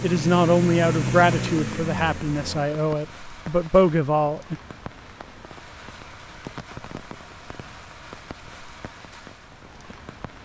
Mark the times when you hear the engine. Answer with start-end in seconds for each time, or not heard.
0.0-2.7.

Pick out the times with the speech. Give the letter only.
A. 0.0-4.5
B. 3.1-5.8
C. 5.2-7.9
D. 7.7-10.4
A.